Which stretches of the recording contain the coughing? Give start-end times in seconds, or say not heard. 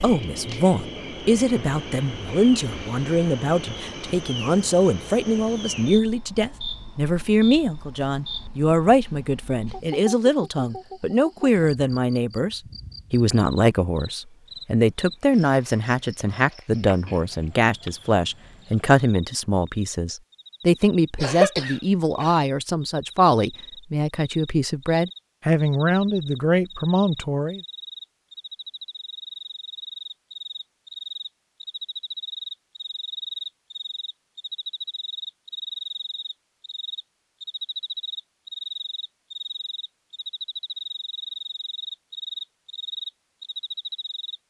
21.1-22.4.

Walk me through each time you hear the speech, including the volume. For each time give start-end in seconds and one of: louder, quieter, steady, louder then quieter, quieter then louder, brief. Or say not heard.
0.0-27.6 steady.